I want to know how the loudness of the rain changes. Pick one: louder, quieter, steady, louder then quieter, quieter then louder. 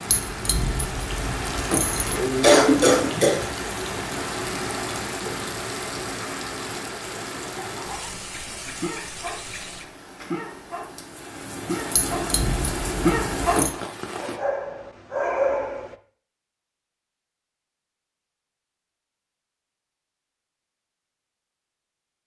quieter then louder.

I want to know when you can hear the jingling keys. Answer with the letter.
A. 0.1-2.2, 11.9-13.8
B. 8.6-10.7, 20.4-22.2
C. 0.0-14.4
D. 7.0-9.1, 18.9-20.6
A.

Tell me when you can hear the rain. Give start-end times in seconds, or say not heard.
0.0-14.4.